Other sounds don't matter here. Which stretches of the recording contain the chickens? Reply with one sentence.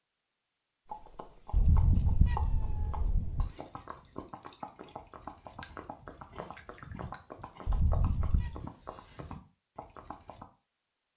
You can't hear the chickens here.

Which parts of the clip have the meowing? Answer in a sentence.
The meowing can be heard from 1.5 to 3.5 s and from 7.7 to 8.6 s.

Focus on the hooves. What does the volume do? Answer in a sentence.
The loudness of the hooves stays about the same.